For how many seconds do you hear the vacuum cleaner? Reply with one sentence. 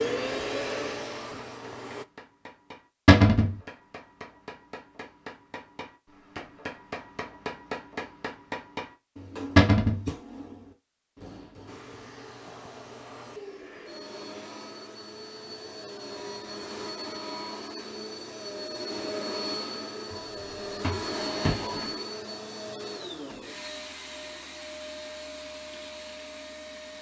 The vacuum cleaner can be heard for 17 seconds in total.